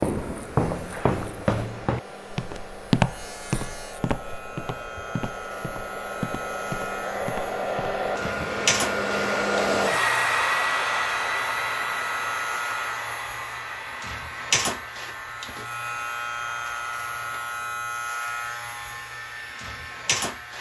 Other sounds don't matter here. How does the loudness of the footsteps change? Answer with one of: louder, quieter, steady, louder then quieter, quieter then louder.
quieter.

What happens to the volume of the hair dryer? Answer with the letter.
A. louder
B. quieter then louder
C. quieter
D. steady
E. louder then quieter
E.